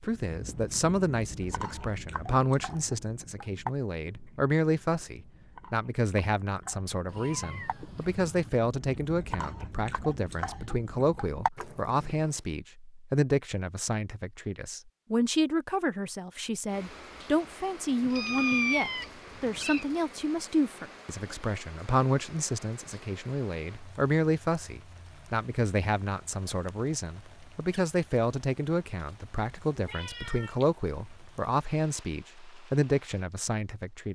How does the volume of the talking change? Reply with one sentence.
The volume of the talking stays about the same.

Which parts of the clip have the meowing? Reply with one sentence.
You can hear the meowing from 7.0 to 8.5 s, from 18.0 to 19.9 s and from 29.8 to 30.6 s.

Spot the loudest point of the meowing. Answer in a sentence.
The loudest moment of the meowing is at 19 seconds.